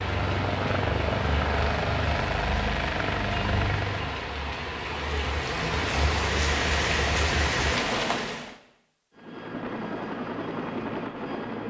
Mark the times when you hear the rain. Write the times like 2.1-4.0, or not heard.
0.0-8.6.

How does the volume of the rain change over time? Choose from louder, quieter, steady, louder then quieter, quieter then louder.
louder.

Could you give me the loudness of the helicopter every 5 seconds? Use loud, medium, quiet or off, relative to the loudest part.
loud, medium, loud.